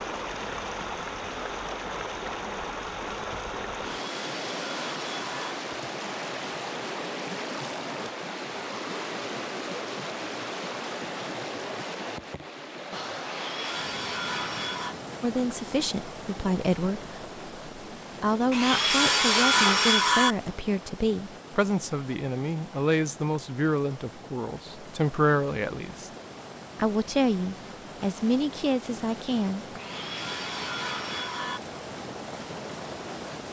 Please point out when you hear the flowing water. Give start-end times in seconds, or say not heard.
0.0-33.4.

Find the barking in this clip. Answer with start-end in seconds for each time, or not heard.
not heard.